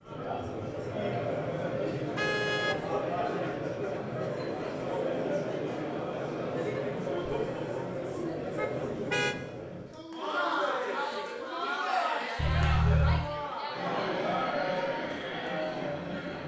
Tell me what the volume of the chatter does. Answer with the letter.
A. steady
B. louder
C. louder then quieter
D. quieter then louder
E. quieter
A.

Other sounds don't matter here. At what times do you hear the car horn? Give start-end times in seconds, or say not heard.
2.1-2.8, 8.6-9.3, 12.3-13.3.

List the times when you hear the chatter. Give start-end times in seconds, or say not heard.
0.0-16.4.